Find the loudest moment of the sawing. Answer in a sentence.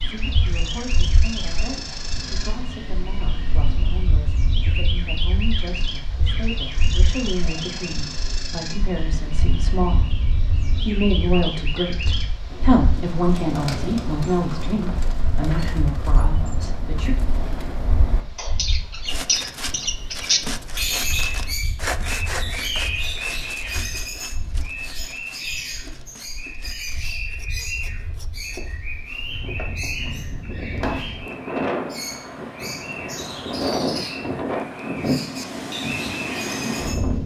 The volume of the sawing peaks at 22 seconds.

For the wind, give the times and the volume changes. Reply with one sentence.
You can hear the wind from 0.0 to 37.2 s, getting quieter then louder.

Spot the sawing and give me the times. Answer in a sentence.
You can hear the sawing from 19.1 to 28.6 s.